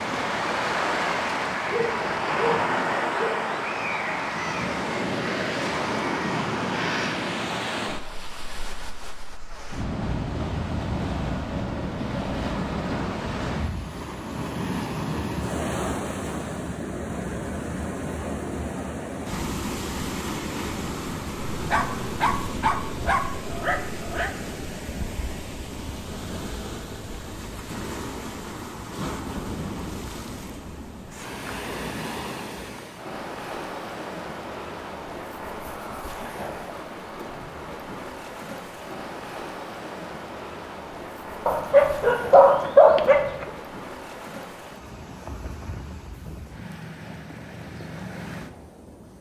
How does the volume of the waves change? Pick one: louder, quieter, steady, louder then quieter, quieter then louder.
quieter.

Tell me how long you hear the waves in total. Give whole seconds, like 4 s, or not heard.
49 s.